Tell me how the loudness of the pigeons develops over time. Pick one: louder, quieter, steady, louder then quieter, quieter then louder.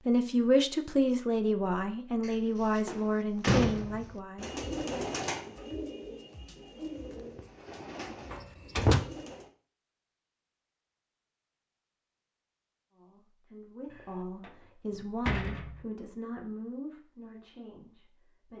quieter.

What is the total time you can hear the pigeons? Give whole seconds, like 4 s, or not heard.
5 s.